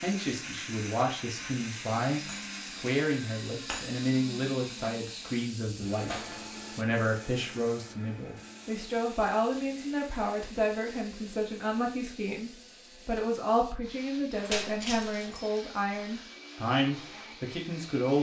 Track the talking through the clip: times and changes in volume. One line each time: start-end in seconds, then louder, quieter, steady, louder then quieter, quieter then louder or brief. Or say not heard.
0.0-18.1 steady.